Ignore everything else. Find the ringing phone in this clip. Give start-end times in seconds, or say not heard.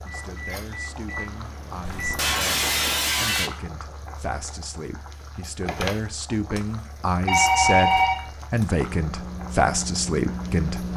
7.2-8.2.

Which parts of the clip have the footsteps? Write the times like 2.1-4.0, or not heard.
not heard.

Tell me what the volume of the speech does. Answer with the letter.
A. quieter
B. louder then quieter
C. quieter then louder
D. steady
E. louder
E.